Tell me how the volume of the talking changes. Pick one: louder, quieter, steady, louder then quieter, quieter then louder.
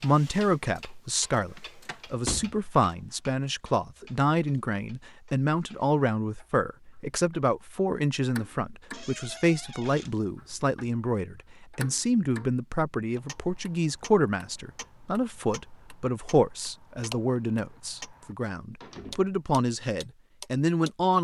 steady.